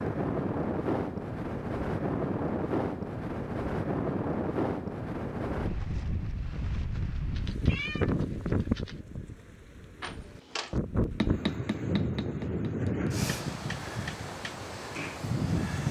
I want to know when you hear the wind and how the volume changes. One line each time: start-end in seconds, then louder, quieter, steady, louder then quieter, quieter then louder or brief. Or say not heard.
0.0-15.8 steady.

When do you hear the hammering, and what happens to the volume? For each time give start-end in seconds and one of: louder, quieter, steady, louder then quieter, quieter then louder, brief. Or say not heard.
10.0-15.3 quieter then louder.